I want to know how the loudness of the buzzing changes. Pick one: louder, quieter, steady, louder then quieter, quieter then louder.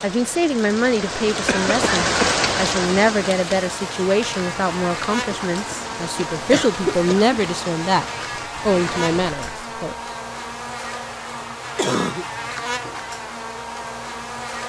steady.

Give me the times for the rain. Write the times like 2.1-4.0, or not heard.
0.0-9.4.